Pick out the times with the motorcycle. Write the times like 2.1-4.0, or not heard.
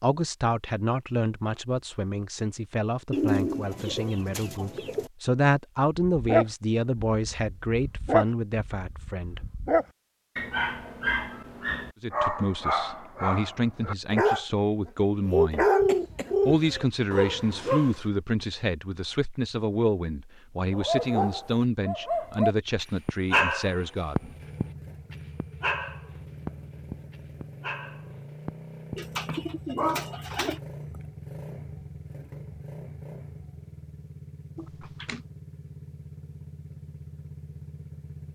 24.1-38.3.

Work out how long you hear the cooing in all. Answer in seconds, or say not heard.
5 s.